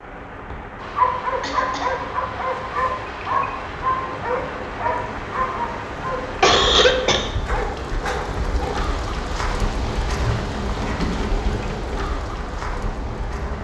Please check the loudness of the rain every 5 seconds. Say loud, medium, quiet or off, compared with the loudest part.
medium, loud, loud.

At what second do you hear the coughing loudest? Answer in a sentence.
The volume of the coughing peaks at 7 seconds.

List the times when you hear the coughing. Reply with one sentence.
The coughing can be heard from 1.4 to 1.9 s, from 6.4 to 7.3 s and from 10.2 to 11.3 s.